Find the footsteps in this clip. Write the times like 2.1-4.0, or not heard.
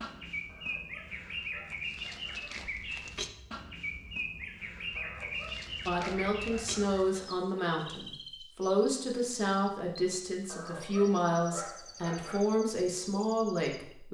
not heard.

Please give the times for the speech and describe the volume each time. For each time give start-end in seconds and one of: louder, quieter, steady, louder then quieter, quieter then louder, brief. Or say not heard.
5.8-14.0 steady.